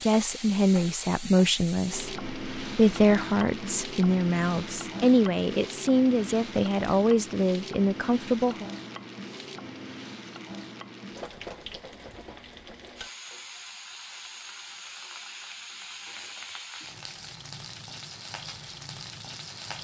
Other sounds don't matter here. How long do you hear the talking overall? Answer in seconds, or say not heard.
9 s.